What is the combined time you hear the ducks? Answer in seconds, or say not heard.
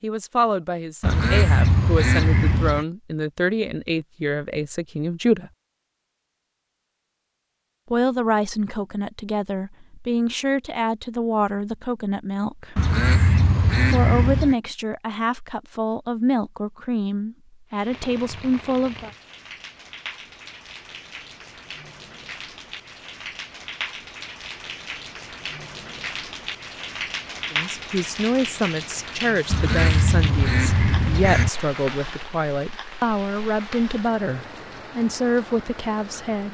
6 s.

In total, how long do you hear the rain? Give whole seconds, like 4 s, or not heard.
19 s.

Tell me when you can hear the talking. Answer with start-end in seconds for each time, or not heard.
0.0-5.5, 7.9-12.8, 13.8-19.1, 27.5-36.4.